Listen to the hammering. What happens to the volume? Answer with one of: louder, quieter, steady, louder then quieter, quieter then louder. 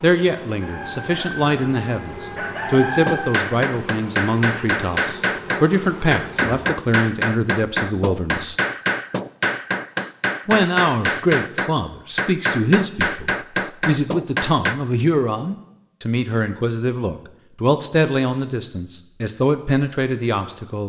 steady.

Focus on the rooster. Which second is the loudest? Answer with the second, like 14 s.
3 s.